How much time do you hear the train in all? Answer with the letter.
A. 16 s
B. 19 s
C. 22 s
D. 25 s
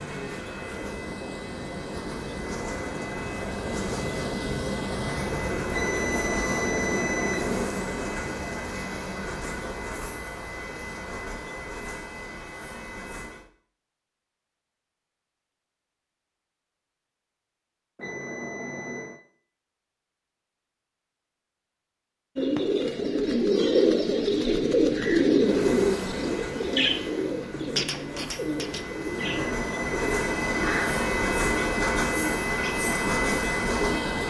C.